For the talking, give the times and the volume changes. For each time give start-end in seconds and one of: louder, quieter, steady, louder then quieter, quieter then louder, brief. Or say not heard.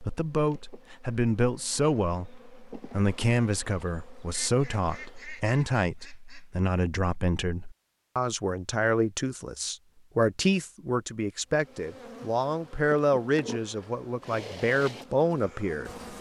0.0-15.9 steady.